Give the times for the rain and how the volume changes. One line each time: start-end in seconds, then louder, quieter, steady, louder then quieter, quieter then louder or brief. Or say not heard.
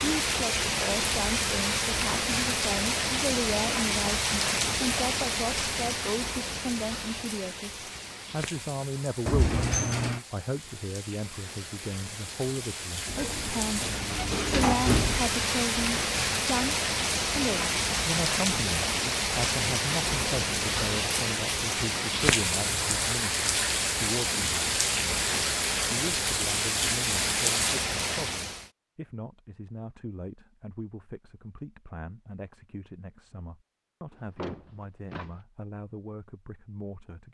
0.0-28.7 quieter then louder.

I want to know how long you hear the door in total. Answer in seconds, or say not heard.
5 s.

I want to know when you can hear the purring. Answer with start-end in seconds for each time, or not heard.
not heard.